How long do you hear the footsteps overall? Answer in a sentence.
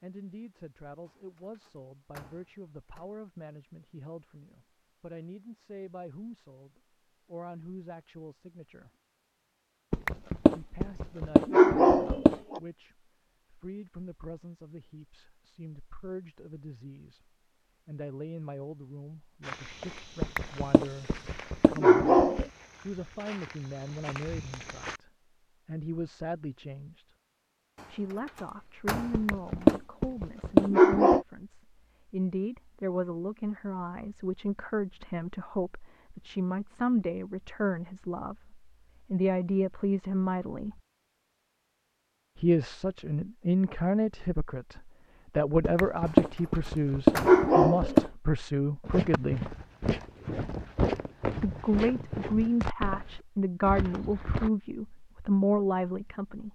The footsteps can be heard for 11 seconds in total.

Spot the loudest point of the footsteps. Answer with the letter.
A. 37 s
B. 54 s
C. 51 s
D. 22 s
C.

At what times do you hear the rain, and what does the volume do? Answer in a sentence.
The rain can't be heard in this clip.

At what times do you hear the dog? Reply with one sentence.
You can hear the dog from 9.9 to 12.6 s, from 20.2 to 22.4 s, from 29.1 to 31.2 s and from 45.6 to 48.1 s.